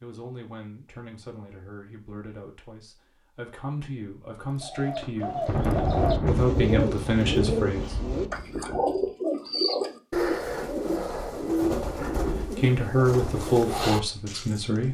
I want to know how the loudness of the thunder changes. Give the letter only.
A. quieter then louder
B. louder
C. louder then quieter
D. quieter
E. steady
D.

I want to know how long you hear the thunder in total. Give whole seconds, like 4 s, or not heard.
4 s.